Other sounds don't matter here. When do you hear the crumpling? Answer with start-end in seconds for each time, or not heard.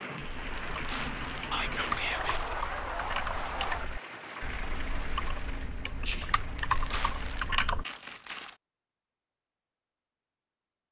0.6-2.5, 6.5-8.6.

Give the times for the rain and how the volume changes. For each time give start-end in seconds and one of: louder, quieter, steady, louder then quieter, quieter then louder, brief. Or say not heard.
0.0-7.6 quieter.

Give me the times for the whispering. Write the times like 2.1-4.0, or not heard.
1.5-2.4, 6.0-6.5.